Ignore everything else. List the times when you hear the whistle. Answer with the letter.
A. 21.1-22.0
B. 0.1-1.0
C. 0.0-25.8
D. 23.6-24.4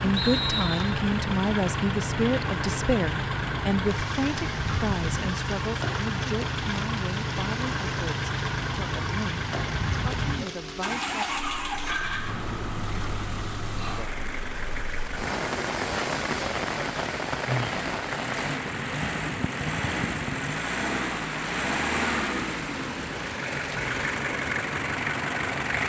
B.